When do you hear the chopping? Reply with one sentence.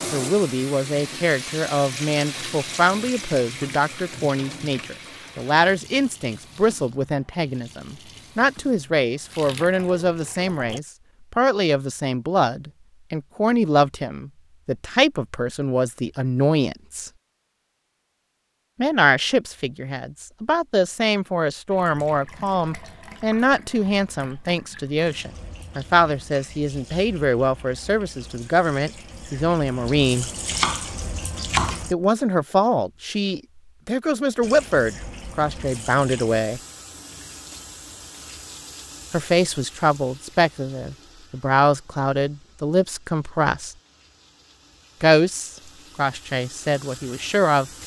The chopping can be heard from 30.5 to 31.9 s.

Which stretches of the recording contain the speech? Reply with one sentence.
The speech can be heard from 0.1 to 17.1 s, from 18.8 to 30.3 s, from 31.9 to 36.6 s, from 39.1 to 43.8 s and from 45.0 to 47.7 s.